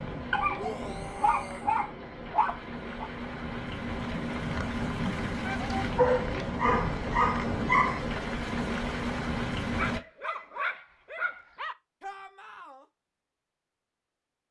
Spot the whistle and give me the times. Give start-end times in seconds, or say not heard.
not heard.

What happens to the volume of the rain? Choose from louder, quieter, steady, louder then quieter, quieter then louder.
louder.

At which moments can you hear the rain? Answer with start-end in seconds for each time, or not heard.
0.0-10.0.